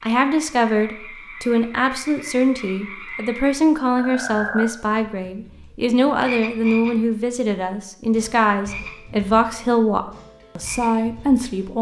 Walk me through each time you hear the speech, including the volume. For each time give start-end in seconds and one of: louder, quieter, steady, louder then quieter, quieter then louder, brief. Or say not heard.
0.0-11.7 steady.